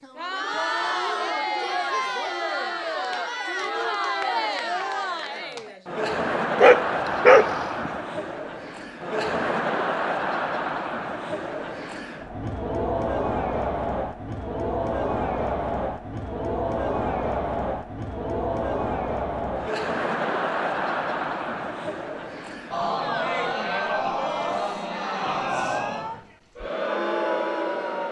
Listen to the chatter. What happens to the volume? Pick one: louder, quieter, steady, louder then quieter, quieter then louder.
steady.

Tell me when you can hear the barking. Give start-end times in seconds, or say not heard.
6.5-7.9.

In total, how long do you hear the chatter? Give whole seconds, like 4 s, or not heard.
28 s.